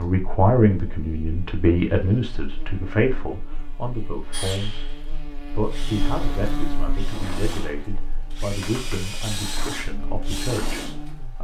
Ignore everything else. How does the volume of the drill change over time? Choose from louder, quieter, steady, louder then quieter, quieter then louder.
louder.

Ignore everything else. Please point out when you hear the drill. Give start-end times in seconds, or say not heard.
4.3-11.3.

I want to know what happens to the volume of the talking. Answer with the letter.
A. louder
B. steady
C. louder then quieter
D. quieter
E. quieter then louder
D.